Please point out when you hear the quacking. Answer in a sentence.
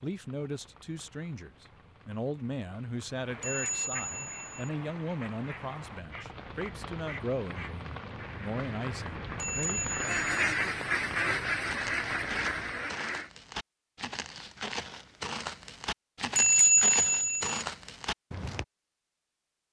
The quacking can be heard from 3.2 to 13.3 s.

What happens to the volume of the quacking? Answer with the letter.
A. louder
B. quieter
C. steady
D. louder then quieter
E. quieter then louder
A.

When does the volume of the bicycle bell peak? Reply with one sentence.
The volume of the bicycle bell peaks at 17 seconds.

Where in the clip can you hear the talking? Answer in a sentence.
You can hear the talking from 0.0 to 9.8 s.